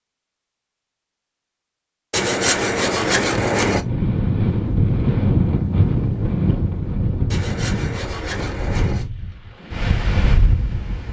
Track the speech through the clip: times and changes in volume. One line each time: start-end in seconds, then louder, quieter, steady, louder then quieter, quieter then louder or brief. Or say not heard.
not heard.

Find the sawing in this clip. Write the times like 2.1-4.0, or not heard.
2.1-3.8, 7.3-9.1.